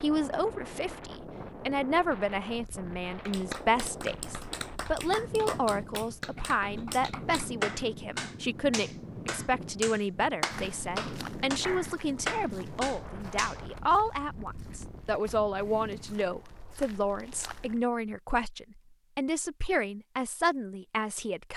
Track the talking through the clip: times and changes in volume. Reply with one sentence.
You can hear the talking from 0.0 to 21.5 s, at a steady volume.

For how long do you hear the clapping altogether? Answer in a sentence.
The clapping can be heard for 10 seconds in total.